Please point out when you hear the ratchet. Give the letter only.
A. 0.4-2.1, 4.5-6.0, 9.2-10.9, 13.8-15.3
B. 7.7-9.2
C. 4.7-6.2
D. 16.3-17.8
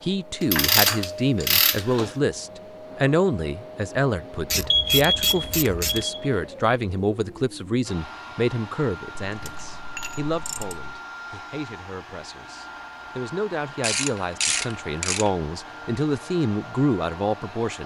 A.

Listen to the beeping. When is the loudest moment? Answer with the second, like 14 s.
5 s.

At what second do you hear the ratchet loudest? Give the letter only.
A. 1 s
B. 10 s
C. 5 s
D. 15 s
A.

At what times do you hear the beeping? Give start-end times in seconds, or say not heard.
4.7-6.2.